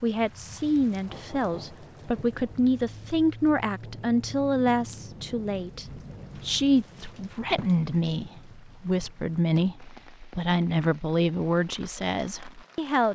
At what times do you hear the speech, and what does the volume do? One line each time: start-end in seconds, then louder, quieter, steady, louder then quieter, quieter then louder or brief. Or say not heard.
0.0-13.1 steady.